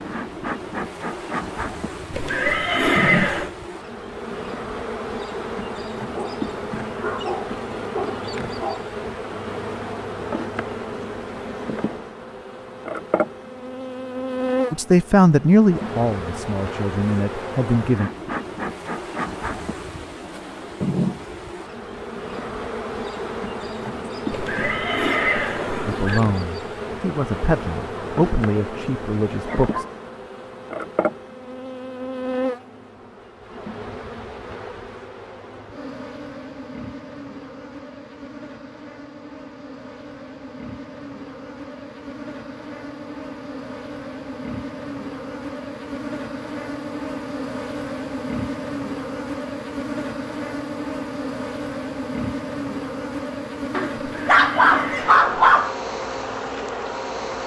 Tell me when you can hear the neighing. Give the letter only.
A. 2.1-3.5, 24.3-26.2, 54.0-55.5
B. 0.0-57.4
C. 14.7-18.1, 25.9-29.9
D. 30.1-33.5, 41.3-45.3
A.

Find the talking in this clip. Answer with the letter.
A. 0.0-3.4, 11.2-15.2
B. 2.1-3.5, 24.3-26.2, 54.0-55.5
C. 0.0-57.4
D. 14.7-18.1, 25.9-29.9
D.